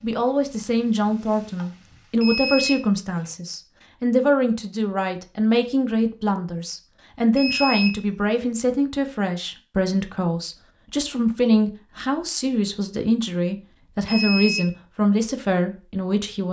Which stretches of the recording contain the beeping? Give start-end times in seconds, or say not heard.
2.2-3.3, 7.3-8.4, 14.1-14.7.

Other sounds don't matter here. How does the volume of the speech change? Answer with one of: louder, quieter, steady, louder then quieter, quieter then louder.
steady.